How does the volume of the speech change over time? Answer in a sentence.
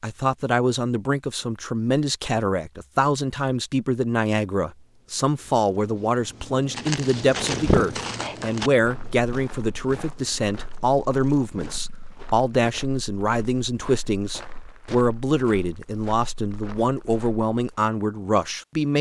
The volume of the speech stays about the same.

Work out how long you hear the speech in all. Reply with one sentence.
You can hear the speech for 19 seconds altogether.